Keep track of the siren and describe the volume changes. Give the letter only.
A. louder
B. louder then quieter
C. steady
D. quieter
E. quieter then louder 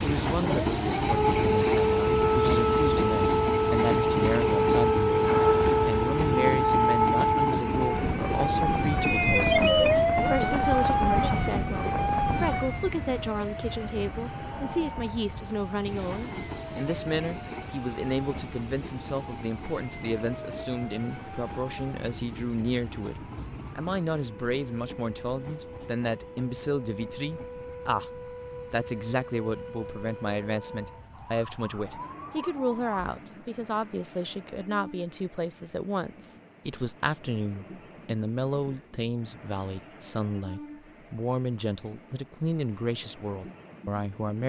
D.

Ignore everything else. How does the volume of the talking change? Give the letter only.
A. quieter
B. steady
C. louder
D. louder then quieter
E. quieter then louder
B.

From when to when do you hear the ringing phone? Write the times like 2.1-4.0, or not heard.
9.1-9.9.